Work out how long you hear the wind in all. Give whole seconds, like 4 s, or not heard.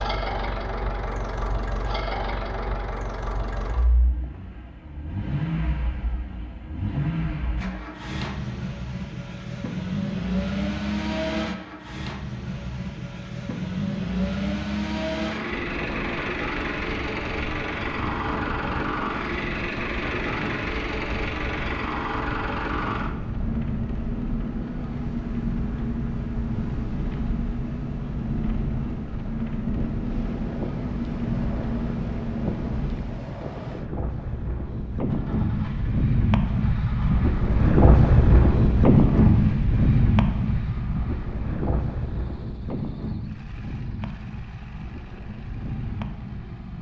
31 s.